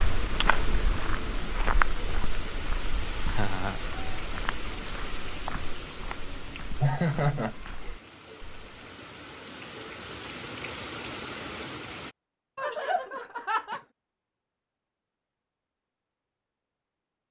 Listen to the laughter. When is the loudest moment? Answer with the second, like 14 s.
7 s.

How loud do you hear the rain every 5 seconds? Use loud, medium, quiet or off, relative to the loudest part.
loud, medium, loud, off.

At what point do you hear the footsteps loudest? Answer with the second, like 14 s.
2 s.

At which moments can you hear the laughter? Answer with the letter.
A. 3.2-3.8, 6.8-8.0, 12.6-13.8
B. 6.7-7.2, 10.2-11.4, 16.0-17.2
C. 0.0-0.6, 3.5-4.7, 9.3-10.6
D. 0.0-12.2
A.